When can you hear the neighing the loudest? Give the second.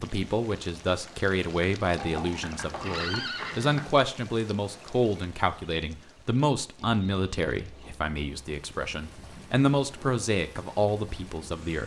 3 s.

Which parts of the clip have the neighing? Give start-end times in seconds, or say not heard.
1.9-4.0, 6.8-8.1.